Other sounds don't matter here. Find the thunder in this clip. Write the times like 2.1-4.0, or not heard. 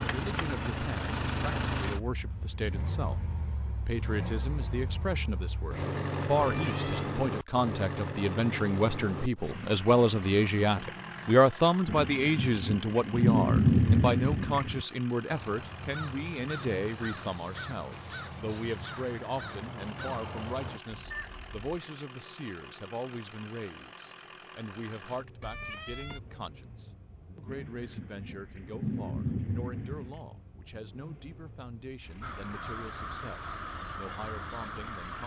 11.8-14.8, 27.4-30.2.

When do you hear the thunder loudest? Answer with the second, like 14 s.
14 s.